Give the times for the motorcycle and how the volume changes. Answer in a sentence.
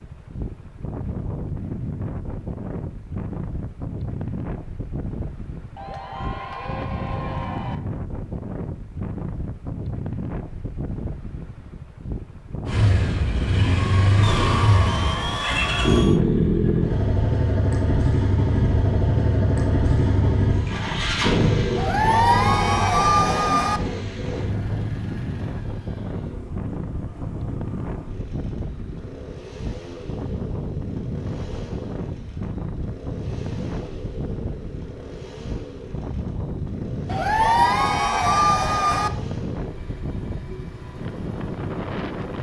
The motorcycle can be heard from 12.7 to 42.3 s, getting quieter.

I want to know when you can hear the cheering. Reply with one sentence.
You can hear the cheering from 5.8 to 7.8 s, from 14.2 to 16.2 s, from 21.8 to 23.8 s and from 37.0 to 39.1 s.